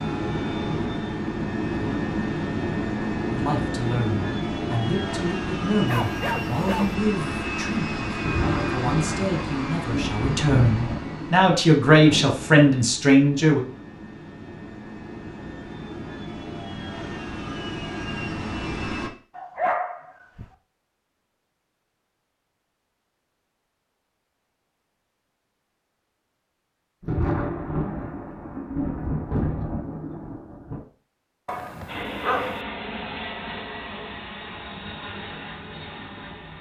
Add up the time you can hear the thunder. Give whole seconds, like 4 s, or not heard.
8 s.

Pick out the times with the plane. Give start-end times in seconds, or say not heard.
0.0-19.1, 31.9-36.5.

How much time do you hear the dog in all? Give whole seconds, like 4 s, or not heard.
3 s.